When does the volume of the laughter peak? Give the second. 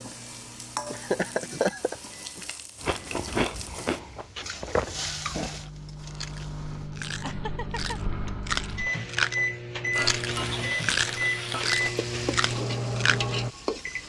2 s.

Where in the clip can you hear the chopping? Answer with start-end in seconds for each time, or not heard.
not heard.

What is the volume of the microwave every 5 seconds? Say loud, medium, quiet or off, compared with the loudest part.
quiet, loud, loud.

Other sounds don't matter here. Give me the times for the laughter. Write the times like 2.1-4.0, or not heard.
0.9-2.5, 7.2-8.0.